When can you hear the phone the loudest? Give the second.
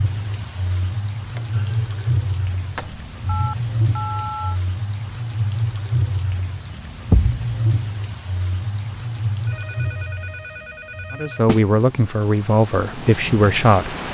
4 s.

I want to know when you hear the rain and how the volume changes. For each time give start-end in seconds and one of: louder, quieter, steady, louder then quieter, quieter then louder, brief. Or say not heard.
0.0-14.1 quieter.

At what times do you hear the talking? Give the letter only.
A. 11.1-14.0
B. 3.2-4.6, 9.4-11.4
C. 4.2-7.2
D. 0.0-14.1
A.